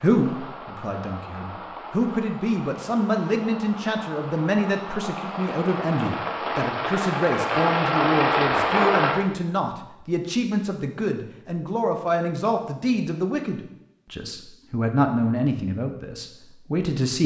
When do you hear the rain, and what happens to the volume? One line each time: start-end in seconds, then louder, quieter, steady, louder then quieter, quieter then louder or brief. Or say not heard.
0.0-9.2 louder.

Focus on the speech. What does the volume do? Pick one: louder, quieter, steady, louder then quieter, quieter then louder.
steady.